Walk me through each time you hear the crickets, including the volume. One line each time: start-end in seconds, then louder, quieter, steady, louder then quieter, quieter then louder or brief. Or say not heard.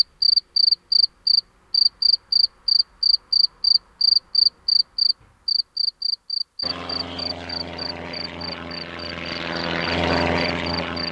0.0-11.0 quieter.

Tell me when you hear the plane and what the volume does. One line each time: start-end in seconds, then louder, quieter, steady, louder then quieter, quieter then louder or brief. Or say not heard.
6.6-11.0 louder.